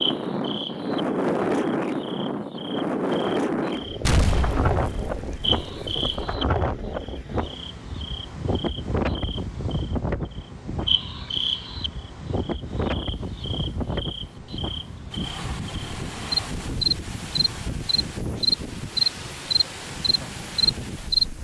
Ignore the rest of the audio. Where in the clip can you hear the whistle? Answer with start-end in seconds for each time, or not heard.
not heard.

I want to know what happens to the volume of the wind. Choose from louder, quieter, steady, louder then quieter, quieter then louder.
quieter.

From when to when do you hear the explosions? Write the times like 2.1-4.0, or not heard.
4.0-6.3.